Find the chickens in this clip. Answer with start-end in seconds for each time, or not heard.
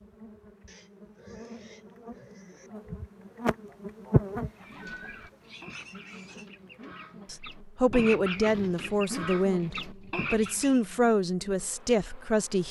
4.5-10.7.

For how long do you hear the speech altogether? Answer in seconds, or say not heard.
5 s.